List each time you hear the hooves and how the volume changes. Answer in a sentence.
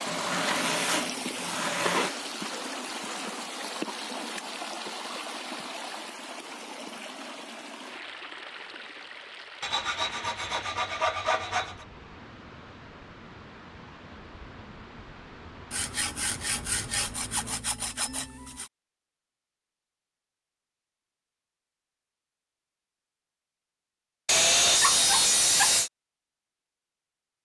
The hooves can't be heard in this clip.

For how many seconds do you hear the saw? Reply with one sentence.
You can hear the saw for 9 seconds altogether.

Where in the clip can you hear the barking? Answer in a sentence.
You can hear the barking from 24.8 to 25.8 s.